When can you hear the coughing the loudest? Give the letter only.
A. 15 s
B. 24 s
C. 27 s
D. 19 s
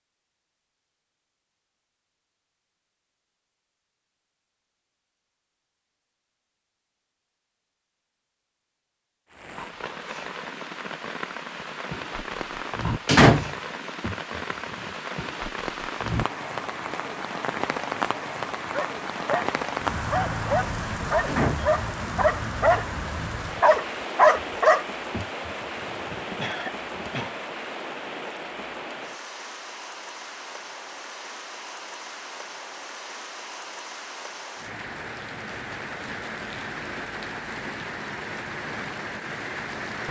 C.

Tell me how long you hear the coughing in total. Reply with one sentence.
The coughing can be heard for 3 seconds in total.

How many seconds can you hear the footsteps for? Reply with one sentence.
You can't hear the footsteps here.